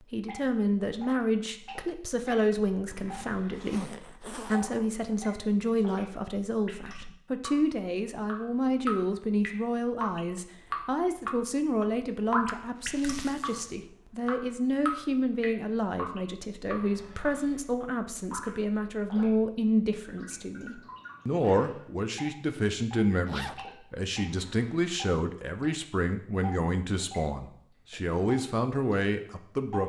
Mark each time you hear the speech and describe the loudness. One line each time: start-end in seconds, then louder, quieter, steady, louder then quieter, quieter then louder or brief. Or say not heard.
0.1-29.8 steady.